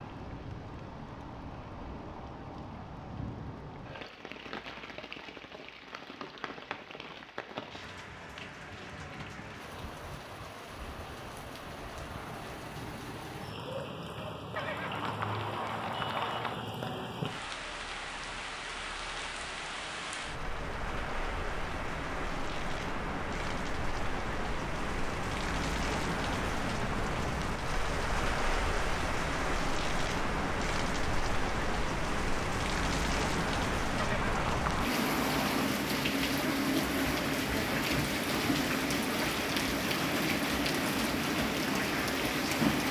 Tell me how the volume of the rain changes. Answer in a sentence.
The loudness of the rain goes up.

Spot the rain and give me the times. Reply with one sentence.
You can hear the rain from 0.0 to 42.8 s.